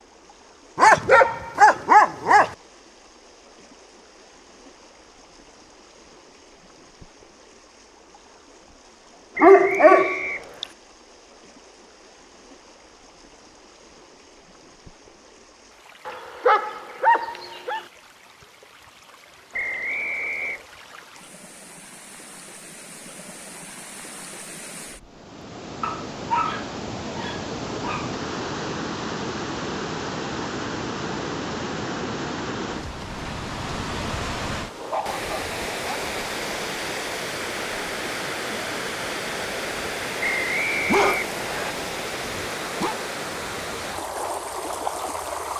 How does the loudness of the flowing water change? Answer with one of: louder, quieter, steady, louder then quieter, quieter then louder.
louder.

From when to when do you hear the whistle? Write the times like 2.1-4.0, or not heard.
9.3-10.7, 19.5-20.6, 40.2-41.8.